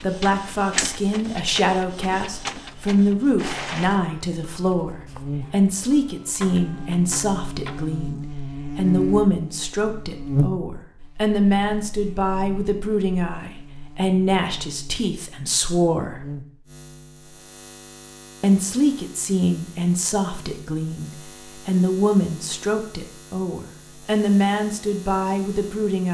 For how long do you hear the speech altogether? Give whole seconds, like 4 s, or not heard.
24 s.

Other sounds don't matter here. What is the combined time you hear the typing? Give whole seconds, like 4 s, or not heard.
not heard.